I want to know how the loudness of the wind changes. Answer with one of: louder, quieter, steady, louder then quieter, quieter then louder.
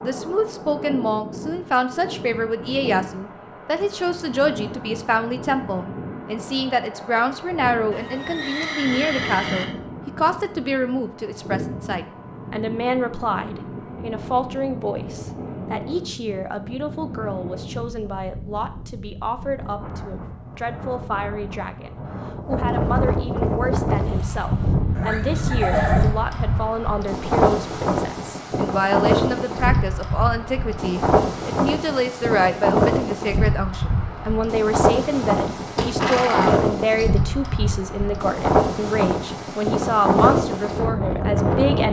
louder.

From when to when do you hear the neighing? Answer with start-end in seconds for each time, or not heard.
7.9-9.7, 24.9-26.1, 35.8-37.0.